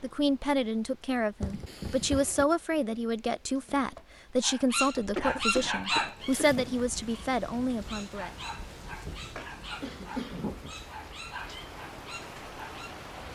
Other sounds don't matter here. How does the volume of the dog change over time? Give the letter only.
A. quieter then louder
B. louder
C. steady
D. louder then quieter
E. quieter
A.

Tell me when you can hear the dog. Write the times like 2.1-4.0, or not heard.
4.4-12.9.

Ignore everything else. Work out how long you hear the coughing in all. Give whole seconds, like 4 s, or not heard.
4 s.